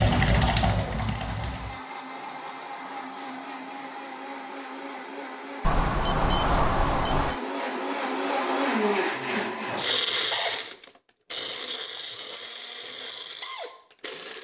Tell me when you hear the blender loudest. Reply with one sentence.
The volume of the blender peaks at 10 seconds.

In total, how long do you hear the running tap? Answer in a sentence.
You can hear the running tap for 2 seconds altogether.